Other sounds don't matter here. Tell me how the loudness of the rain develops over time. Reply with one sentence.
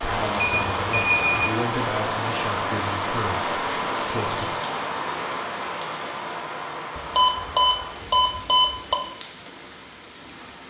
The loudness of the rain goes down.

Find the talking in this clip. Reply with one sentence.
The talking can be heard from 0.0 to 4.5 s.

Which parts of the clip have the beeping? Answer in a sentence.
The beeping can be heard from 0.3 to 1.4 s and from 7.2 to 8.9 s.